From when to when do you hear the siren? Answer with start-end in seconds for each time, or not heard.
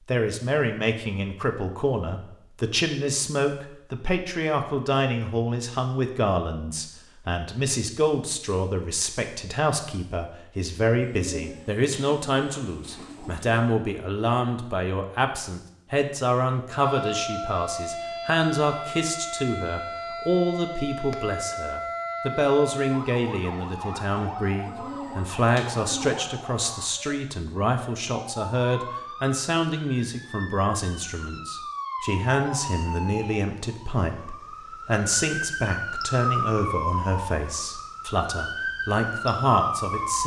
16.6-40.2.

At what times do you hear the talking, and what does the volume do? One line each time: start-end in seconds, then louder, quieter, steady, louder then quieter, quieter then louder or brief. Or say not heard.
0.1-40.2 steady.